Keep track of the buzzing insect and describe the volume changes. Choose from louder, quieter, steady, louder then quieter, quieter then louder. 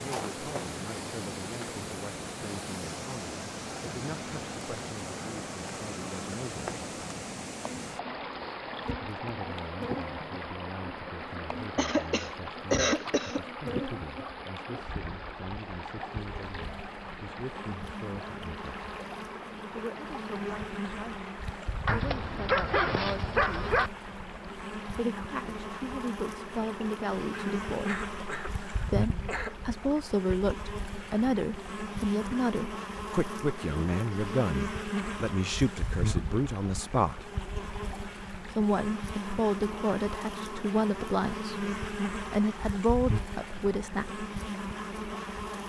louder.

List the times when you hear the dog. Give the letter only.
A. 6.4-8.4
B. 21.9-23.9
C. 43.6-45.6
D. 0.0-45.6
B.